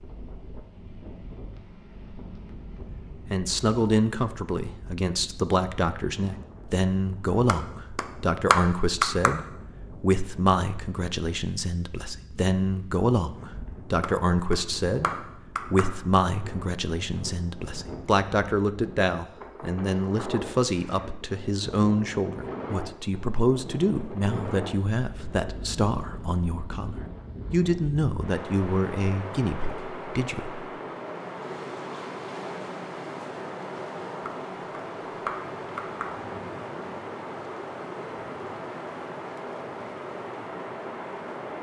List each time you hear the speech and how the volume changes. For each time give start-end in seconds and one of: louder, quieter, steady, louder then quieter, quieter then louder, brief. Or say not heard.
3.2-30.6 steady.